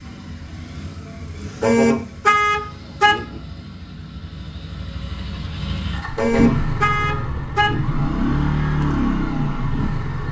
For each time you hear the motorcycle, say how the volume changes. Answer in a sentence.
The motorcycle can be heard from 0.0 to 10.2 s, getting louder.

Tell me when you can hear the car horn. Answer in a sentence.
The car horn can be heard from 1.6 to 3.4 s and from 6.2 to 8.0 s.